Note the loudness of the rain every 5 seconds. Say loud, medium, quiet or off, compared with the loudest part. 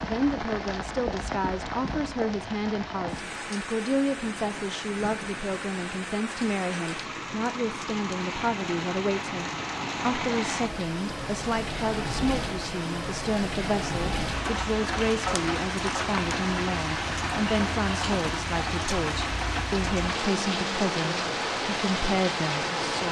medium, medium, loud, loud, loud.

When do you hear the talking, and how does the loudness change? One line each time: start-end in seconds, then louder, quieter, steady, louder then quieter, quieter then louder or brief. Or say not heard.
0.0-23.0 steady.